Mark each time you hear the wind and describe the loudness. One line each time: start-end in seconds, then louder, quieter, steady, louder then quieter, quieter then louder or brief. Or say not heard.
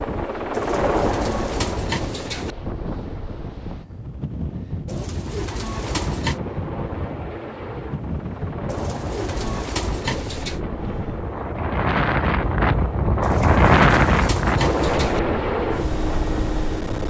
0.0-17.0 louder.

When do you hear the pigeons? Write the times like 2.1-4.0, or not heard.
0.5-2.5, 4.8-6.4, 8.7-10.6, 13.2-15.2.